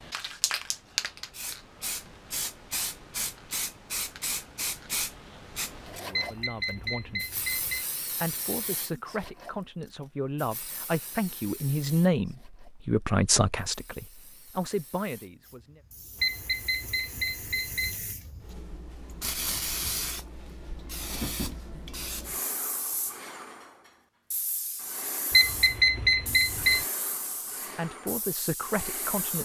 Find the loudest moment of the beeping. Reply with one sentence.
The loudest moment of the beeping is at 26 seconds.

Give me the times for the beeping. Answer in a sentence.
The beeping can be heard from 6.1 to 7.8 s, from 16.2 to 17.9 s and from 25.3 to 26.9 s.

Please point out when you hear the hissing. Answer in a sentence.
The hissing can be heard from 0.0 to 29.3 s.